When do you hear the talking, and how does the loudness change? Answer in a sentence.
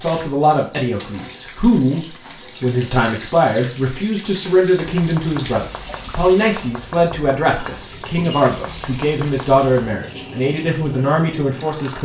The talking can be heard from 0.0 to 12.0 s, at a steady volume.